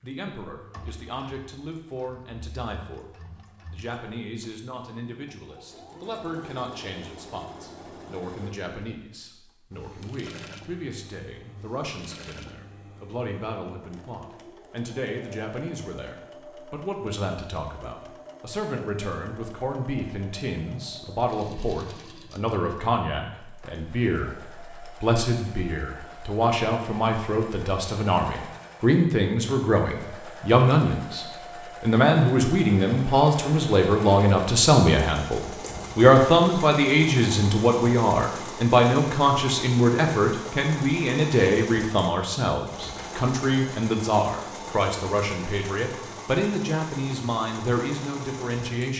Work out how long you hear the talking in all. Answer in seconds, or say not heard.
48 s.